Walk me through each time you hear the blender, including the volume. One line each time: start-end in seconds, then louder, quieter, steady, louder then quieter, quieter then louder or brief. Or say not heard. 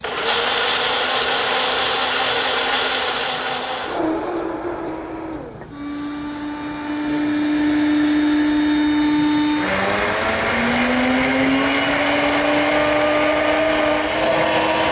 0.0-14.8 quieter then louder.